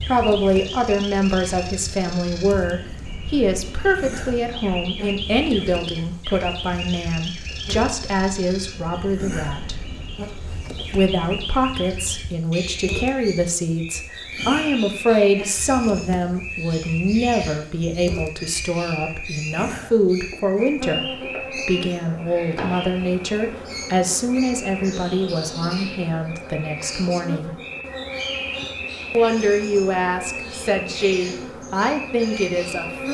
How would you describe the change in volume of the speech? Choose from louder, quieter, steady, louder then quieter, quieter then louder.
steady.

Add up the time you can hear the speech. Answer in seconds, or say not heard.
30 s.